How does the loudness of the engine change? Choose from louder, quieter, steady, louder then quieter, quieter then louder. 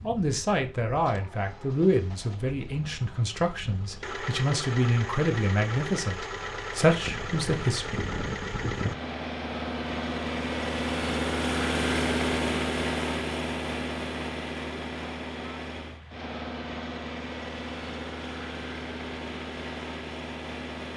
louder then quieter.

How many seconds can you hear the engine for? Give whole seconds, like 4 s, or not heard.
21 s.